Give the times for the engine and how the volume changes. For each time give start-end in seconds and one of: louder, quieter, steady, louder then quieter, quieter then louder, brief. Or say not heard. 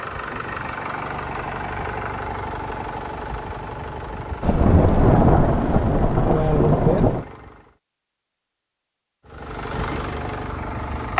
0.0-7.8 quieter
9.2-11.1 brief.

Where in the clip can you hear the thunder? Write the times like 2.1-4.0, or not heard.
4.4-7.2.